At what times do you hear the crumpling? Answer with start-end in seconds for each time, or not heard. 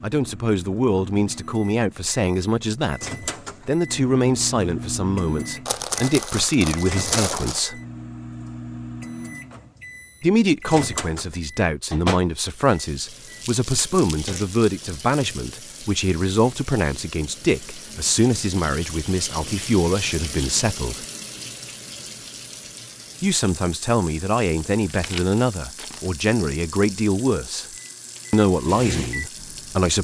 5.7-7.7, 13.4-15.4, 24.8-26.1.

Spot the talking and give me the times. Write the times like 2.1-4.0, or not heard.
0.0-7.8, 10.2-21.1, 23.2-27.6, 28.3-29.9.